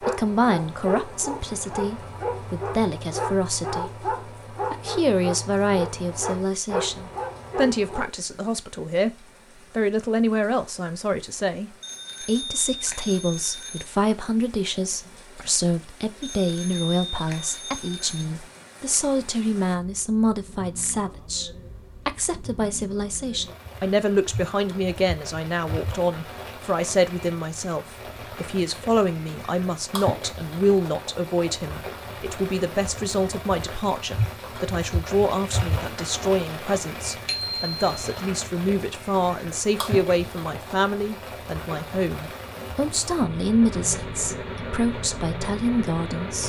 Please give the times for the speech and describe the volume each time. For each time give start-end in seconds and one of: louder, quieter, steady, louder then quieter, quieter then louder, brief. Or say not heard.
0.1-46.4 steady.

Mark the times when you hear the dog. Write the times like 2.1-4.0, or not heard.
0.0-8.1.